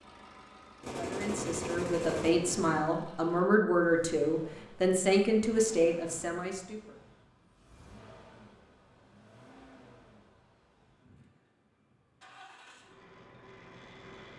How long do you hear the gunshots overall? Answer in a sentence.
You can hear the gunshots for 2 seconds altogether.